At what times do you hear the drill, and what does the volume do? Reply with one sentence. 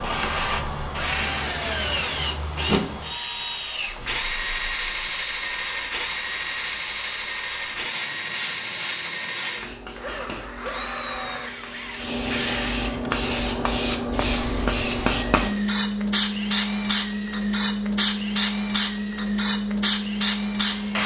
The drill can be heard from 0.0 to 21.0 s, getting quieter.